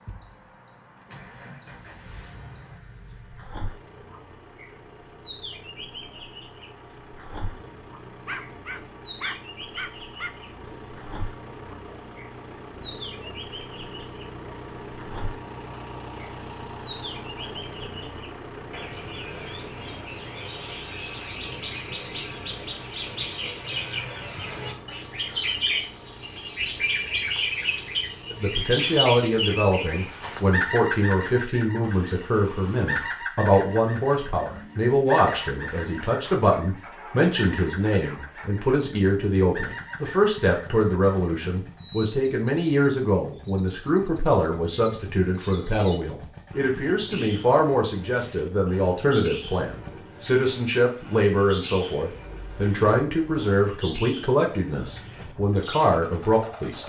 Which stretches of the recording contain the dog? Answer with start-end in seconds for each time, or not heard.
8.2-10.3.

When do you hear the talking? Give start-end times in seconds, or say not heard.
28.3-56.8.